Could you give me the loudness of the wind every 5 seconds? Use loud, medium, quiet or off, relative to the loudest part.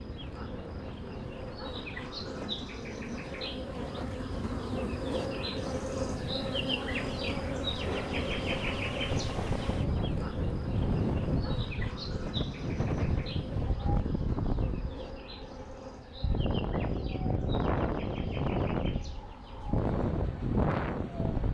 quiet, medium, loud, loud, loud.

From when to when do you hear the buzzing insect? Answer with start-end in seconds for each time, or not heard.
0.0-21.5.